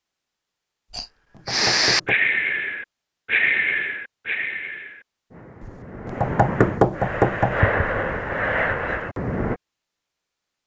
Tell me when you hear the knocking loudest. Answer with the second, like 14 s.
7 s.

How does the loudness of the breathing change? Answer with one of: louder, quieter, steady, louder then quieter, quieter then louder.
quieter then louder.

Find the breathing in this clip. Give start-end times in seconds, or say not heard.
0.9-9.6.